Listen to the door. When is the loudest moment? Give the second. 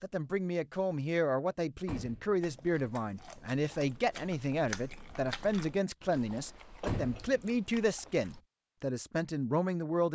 7 s.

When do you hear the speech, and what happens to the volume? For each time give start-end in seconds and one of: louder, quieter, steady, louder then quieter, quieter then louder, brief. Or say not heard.
0.0-10.0 steady.